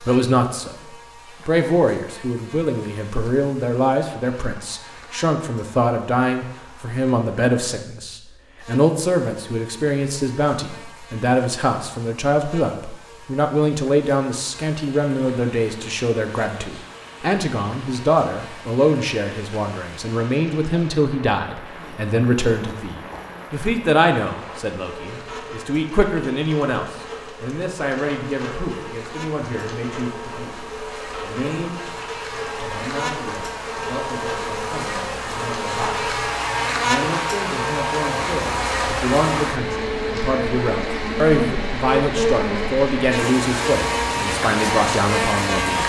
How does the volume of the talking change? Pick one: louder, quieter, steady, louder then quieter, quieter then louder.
quieter then louder.